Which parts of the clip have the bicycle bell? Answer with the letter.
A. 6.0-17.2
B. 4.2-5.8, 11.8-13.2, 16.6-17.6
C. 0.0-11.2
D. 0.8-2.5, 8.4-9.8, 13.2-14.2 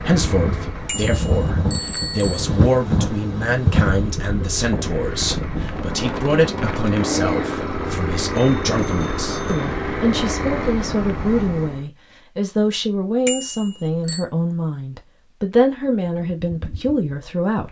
D.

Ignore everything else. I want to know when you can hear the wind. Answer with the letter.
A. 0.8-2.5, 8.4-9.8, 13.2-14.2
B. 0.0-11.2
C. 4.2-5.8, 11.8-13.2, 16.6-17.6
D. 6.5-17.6
B.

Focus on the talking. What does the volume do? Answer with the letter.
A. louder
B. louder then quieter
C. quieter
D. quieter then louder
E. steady
E.